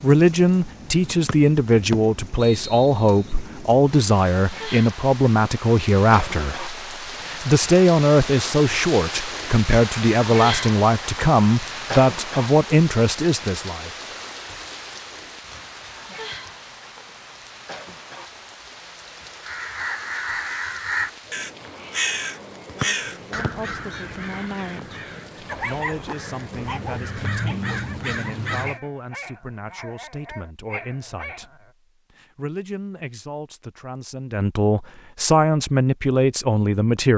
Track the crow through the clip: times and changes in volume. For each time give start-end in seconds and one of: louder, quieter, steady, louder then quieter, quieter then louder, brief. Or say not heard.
19.4-28.8 quieter then louder.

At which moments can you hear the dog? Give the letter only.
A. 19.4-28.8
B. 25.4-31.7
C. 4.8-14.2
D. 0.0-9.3
B.